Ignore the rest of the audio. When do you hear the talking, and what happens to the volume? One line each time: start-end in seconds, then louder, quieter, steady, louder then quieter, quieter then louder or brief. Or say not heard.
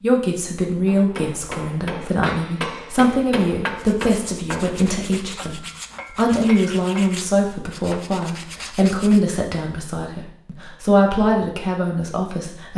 0.0-12.7 steady.